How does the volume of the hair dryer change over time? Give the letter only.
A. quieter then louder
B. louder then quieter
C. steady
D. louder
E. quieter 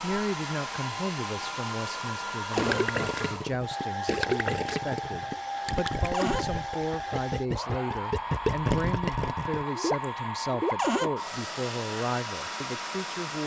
C.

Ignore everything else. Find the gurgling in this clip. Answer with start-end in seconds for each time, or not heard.
2.5-10.8.